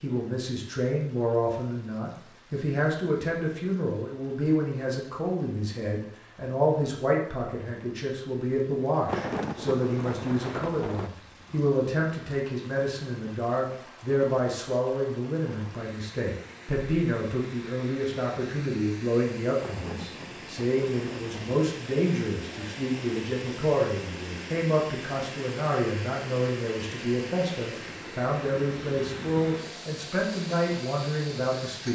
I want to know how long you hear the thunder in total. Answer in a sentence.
The thunder can be heard for 4 seconds in total.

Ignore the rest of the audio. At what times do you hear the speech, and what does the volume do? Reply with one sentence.
The speech can be heard from 0.0 to 31.9 s, at a steady volume.